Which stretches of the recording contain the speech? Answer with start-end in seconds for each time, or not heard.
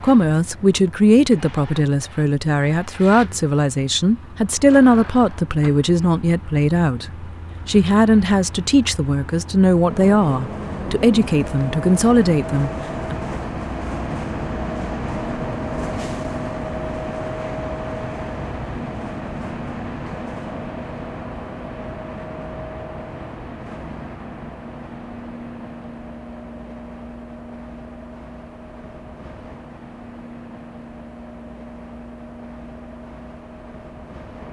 0.0-7.0, 7.7-13.2.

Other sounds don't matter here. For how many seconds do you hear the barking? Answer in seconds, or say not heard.
not heard.